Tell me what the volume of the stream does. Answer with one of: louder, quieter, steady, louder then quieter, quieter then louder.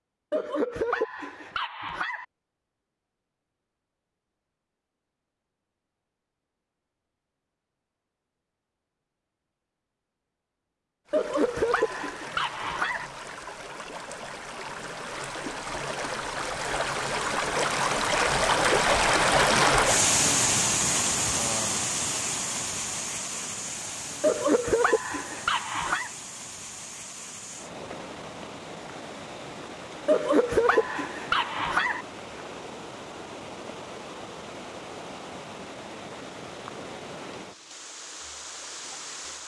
louder then quieter.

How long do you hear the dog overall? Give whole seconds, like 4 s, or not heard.
8 s.